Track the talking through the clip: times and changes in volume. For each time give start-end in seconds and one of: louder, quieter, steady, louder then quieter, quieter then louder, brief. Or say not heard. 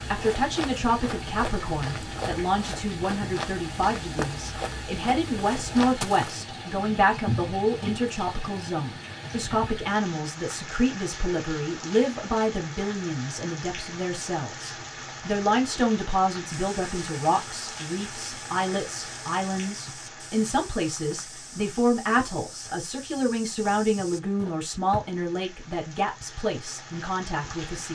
0.1-27.9 steady.